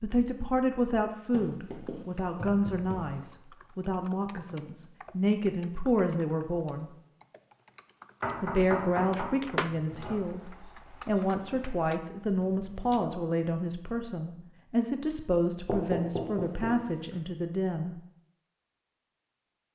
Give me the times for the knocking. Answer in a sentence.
You can hear the knocking from 1.3 to 3.3 s, from 8.2 to 10.2 s and from 15.7 to 17.2 s.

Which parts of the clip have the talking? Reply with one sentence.
The talking can be heard from 0.0 to 6.9 s, from 8.4 to 10.4 s and from 11.1 to 17.9 s.